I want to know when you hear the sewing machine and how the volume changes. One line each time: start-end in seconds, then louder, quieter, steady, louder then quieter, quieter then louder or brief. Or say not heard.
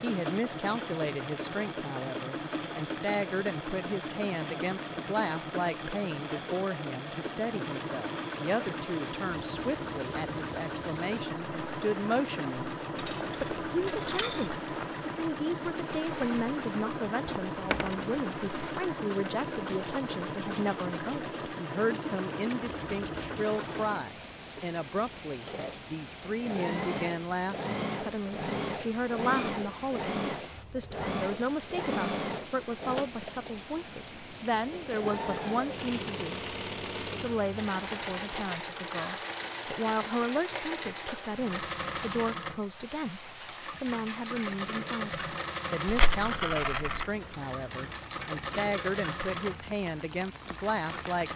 0.0-51.3 steady.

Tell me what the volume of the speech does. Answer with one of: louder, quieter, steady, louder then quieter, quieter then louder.
steady.